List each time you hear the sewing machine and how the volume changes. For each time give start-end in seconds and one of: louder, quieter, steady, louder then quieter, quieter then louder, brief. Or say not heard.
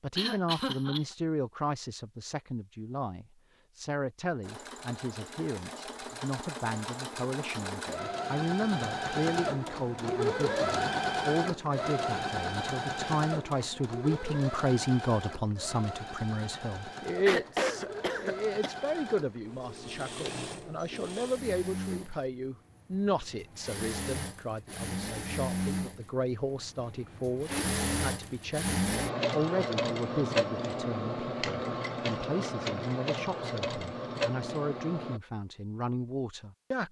4.4-35.2 quieter then louder.